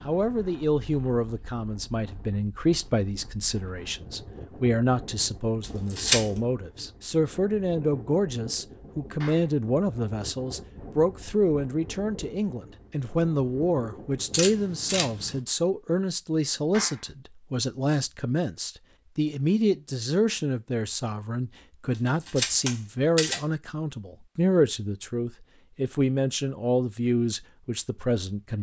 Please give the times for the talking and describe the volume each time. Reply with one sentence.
You can hear the talking from 0.0 to 28.5 s, at a steady volume.